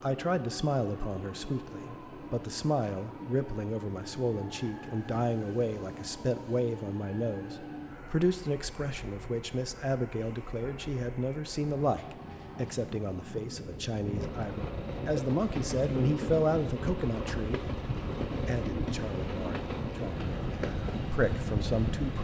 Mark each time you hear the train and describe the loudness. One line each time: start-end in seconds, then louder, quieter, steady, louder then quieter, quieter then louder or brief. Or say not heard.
0.0-22.1 louder.